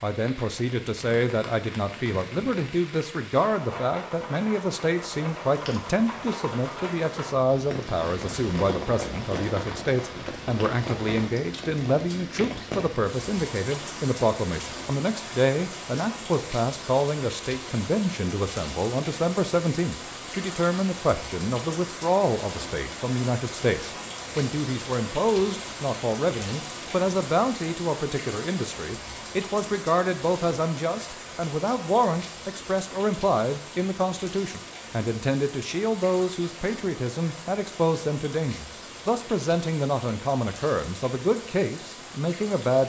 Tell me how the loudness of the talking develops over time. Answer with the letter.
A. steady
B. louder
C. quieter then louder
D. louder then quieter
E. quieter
A.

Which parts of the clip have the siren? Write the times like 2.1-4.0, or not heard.
not heard.